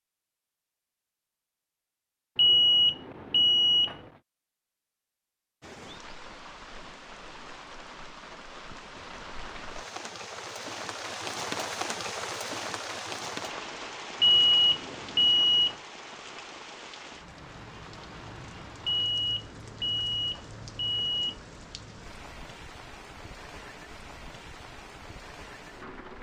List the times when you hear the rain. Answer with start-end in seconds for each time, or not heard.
5.6-26.1.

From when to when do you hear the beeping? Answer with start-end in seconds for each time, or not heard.
2.4-4.0, 14.2-15.8, 18.9-21.4.